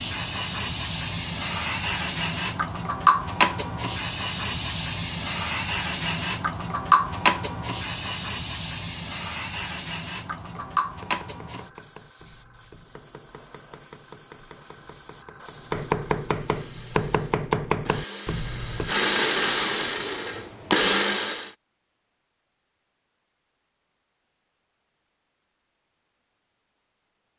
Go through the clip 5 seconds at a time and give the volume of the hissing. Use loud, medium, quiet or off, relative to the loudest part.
loud, loud, medium, quiet, off, off.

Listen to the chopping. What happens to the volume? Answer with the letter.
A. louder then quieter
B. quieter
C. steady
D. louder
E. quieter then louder
A.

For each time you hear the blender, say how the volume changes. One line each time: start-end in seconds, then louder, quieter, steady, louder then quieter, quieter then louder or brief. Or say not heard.
16.4-21.6 louder.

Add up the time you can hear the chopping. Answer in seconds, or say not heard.
9 s.